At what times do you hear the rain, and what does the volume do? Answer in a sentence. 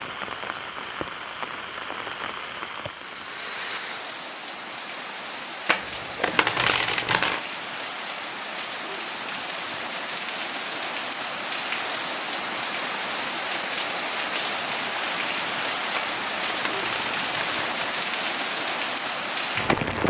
You can hear the rain from 0.0 to 20.0 s, getting louder.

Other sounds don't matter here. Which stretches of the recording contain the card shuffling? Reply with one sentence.
You can hear the card shuffling from 5.7 to 7.4 s and from 15.9 to 17.7 s.